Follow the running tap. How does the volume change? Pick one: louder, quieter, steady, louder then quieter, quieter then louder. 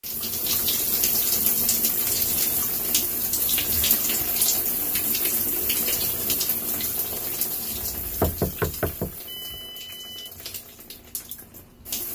quieter.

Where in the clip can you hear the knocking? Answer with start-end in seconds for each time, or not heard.
7.8-9.2.